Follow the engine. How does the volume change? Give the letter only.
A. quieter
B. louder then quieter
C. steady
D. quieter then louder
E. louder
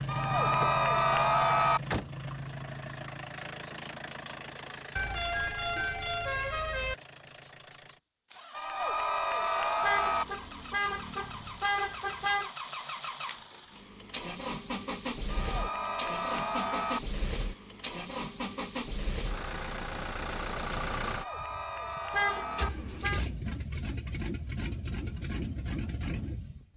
D.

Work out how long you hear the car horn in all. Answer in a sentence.
The car horn can be heard for 6 seconds in total.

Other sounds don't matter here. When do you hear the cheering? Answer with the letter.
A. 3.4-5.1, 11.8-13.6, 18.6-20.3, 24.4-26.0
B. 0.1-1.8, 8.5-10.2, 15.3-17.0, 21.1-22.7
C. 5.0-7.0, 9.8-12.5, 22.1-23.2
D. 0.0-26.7
B.